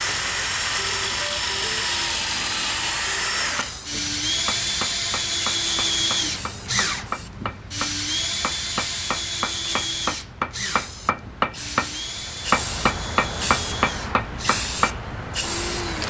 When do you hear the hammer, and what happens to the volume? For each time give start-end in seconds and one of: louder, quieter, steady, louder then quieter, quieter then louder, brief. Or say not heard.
3.5-14.9 louder.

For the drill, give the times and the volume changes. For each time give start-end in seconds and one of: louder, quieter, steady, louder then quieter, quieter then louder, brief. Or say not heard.
0.0-16.0 quieter.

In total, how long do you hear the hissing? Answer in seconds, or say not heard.
16 s.